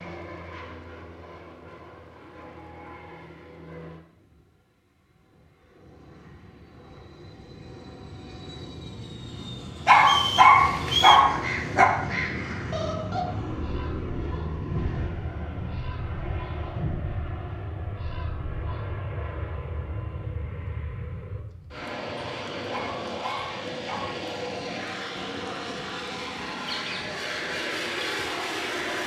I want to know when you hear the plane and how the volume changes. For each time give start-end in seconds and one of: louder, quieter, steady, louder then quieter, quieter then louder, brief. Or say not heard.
0.0-29.0 louder.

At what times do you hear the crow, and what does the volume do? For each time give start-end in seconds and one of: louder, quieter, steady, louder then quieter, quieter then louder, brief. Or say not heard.
10.6-18.9 quieter
26.6-29.0 brief.